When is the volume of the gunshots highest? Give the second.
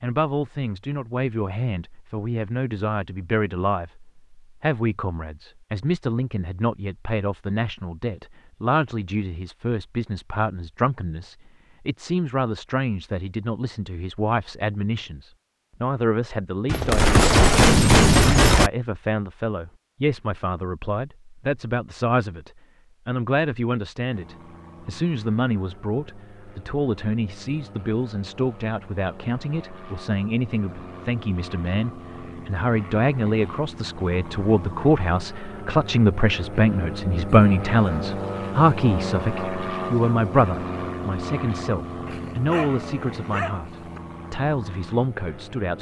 18 s.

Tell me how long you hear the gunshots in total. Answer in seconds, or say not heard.
2 s.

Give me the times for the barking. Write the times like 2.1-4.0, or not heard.
42.0-44.0.